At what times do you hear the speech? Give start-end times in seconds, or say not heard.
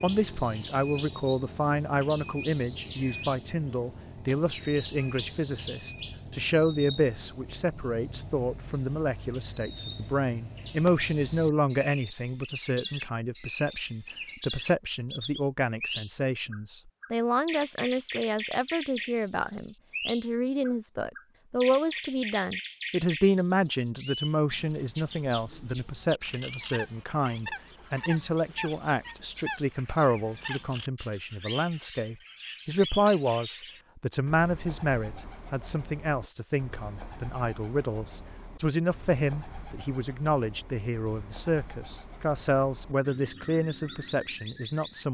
0.0-45.0.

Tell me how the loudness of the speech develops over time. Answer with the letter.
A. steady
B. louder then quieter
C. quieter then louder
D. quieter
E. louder
A.